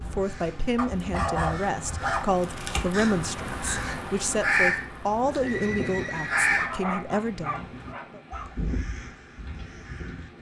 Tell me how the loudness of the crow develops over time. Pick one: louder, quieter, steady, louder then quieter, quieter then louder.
louder then quieter.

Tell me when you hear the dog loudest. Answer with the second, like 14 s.
1 s.